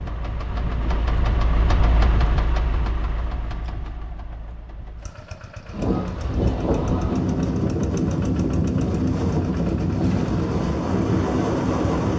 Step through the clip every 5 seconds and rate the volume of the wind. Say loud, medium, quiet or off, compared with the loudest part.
off, loud, loud.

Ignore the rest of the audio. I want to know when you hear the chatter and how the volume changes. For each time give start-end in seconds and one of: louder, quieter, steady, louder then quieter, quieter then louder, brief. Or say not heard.
not heard.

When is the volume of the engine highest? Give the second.
2 s.